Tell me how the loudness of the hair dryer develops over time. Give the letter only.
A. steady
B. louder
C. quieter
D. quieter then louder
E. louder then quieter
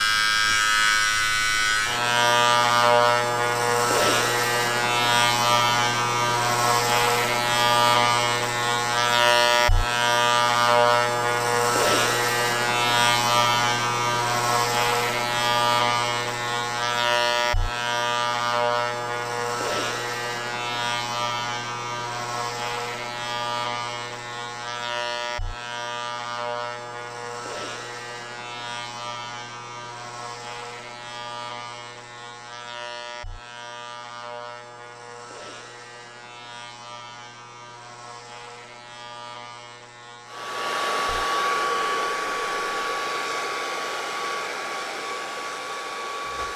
C.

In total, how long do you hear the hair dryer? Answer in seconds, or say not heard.
6 s.